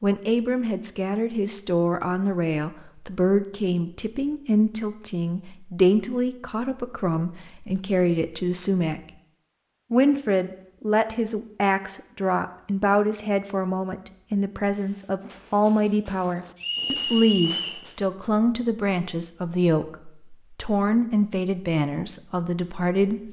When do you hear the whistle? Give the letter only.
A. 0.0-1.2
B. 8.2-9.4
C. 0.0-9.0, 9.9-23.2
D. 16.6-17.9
D.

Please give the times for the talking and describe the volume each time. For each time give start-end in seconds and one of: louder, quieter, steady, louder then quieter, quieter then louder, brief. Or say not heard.
0.0-9.0 steady
9.9-23.2 steady.